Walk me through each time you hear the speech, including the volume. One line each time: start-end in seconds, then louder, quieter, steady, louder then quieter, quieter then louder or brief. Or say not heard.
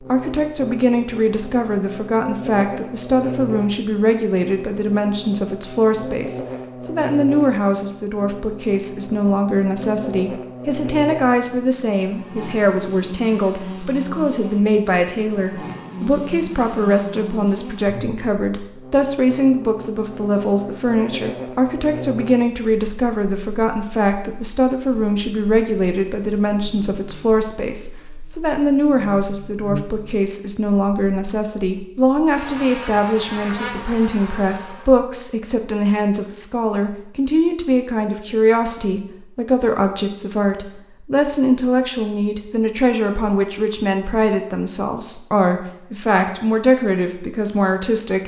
0.1-48.2 steady.